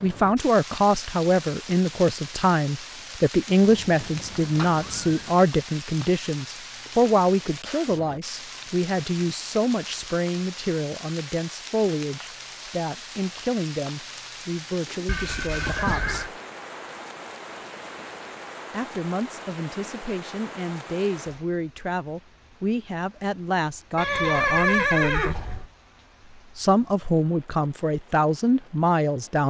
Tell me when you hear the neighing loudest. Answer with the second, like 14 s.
25 s.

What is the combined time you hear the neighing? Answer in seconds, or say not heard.
5 s.